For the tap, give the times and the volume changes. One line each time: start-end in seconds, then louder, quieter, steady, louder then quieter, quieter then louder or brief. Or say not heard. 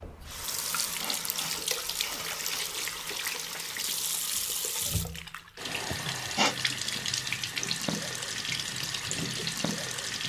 0.0-10.2 steady.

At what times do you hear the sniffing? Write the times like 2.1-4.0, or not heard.
0.5-2.7, 5.9-6.5.